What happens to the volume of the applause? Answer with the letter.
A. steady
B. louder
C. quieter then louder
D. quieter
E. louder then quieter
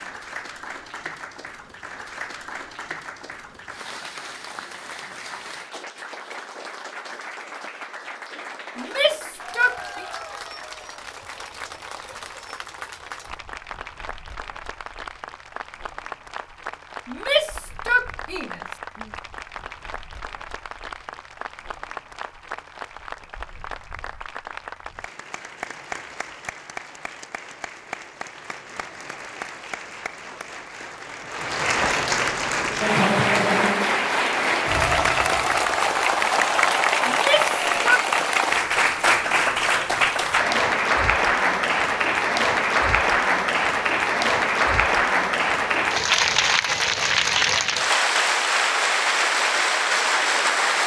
B.